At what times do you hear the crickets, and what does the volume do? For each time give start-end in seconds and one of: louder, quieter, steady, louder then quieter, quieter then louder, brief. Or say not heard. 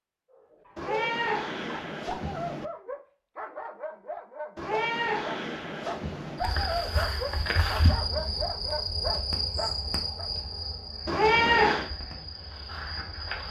6.3-13.4 quieter.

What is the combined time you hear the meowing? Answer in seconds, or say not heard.
5 s.